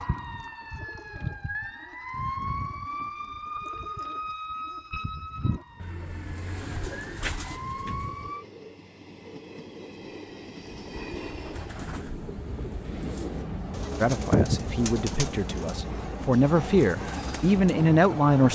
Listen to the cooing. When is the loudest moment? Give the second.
14 s.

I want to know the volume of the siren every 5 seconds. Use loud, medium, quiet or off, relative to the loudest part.
loud, loud, off, off.